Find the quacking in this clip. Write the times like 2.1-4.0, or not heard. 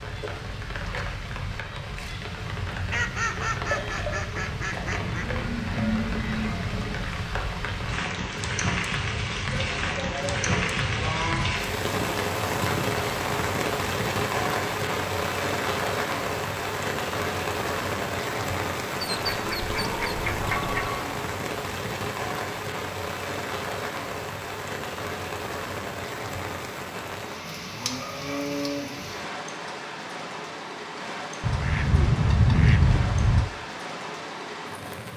2.9-5.2, 19.1-20.8, 31.4-33.5.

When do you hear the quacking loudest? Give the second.
33 s.